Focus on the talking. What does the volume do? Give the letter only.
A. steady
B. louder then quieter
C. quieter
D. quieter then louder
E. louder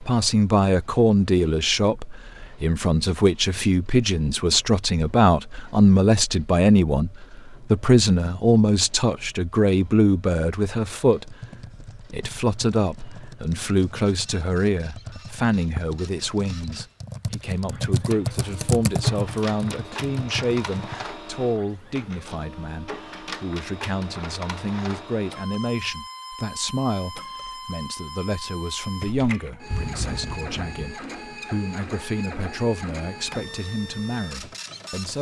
C.